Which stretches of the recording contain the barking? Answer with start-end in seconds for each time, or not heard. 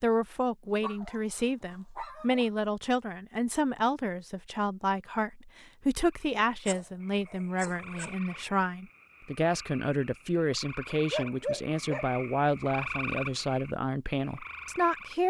0.7-2.5, 6.7-8.1, 10.9-12.1.